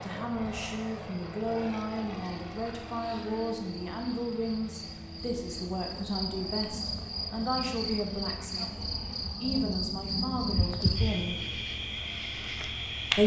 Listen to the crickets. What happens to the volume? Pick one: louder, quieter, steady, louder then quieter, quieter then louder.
louder.